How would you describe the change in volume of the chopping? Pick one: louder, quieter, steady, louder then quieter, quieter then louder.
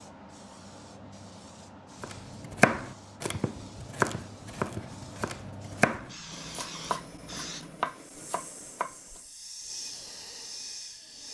quieter.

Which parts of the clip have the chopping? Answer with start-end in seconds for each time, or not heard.
2.0-9.2.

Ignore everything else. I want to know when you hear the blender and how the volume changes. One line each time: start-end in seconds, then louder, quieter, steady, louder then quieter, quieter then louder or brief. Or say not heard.
not heard.